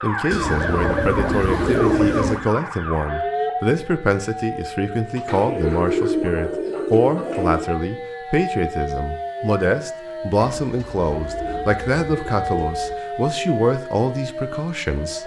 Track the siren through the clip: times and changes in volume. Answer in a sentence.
You can hear the siren from 0.0 to 15.2 s, at a steady volume.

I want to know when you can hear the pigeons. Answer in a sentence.
The pigeons can be heard from 0.3 to 2.5 s, from 5.2 to 7.7 s and from 10.3 to 12.9 s.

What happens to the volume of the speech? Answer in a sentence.
The volume of the speech stays about the same.